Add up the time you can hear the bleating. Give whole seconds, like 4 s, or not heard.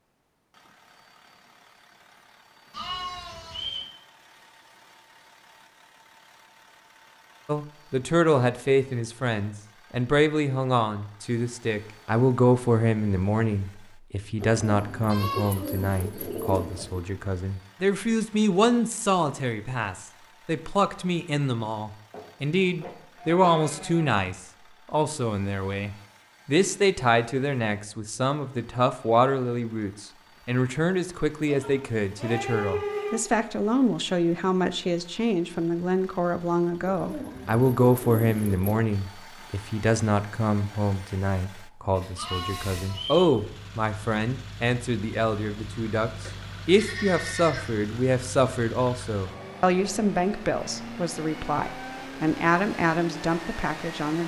9 s.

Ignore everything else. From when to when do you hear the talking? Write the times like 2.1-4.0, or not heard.
7.5-54.2.